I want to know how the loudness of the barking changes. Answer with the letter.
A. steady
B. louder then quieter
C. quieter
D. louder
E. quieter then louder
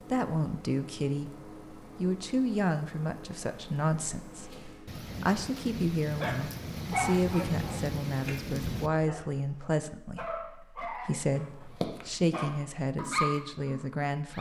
E.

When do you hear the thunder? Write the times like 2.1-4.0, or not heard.
4.8-8.9.